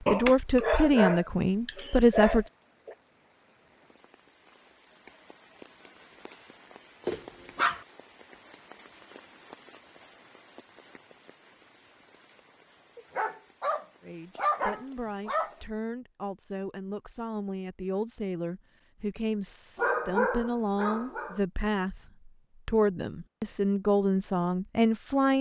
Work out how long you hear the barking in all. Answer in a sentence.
The barking can be heard for 8 seconds in total.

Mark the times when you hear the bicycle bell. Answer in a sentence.
You can't hear the bicycle bell here.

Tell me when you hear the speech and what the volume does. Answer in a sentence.
You can hear the speech briefly from 0.0 to 2.5 s; and from 14.0 to 25.3 s, getting louder.